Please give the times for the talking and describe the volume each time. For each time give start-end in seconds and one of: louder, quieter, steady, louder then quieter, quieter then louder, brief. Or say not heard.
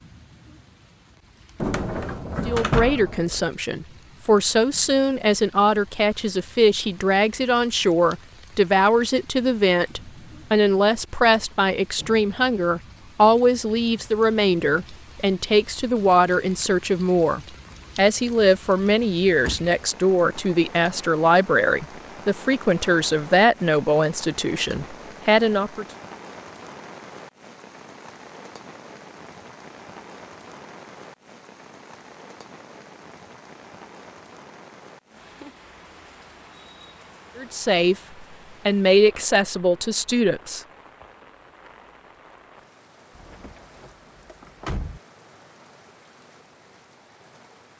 2.5-25.9 steady
37.4-38.0 brief
38.6-40.6 brief.